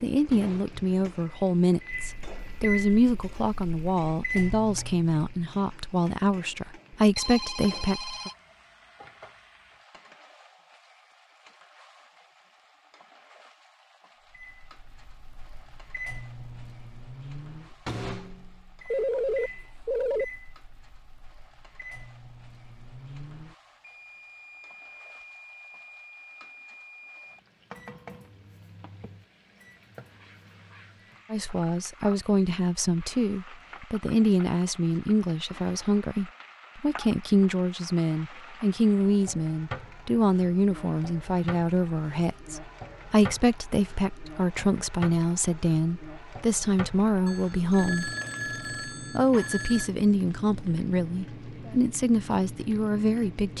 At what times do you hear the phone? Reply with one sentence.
The phone can be heard from 7.2 to 8.3 s, from 18.9 to 20.2 s and from 47.2 to 49.9 s.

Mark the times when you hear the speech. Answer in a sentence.
The speech can be heard from 0.0 to 8.3 s, from 31.3 to 48.1 s and from 49.1 to 53.5 s.